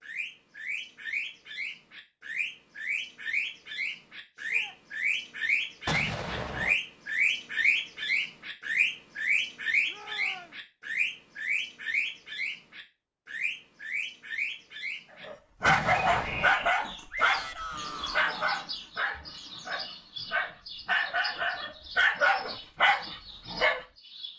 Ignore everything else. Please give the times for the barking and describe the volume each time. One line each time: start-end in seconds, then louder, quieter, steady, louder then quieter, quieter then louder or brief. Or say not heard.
15.2-23.9 quieter then louder.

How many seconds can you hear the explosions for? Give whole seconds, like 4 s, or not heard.
2 s.